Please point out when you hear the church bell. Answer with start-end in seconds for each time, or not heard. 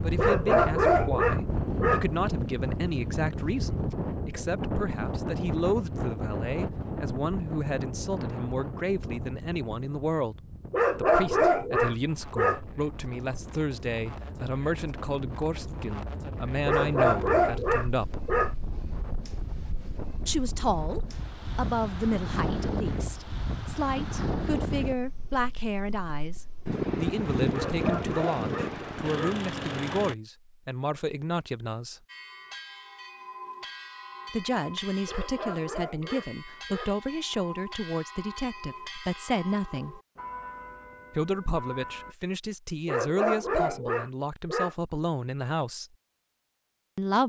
32.0-42.1.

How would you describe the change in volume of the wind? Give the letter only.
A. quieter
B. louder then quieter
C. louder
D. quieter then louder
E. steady
D.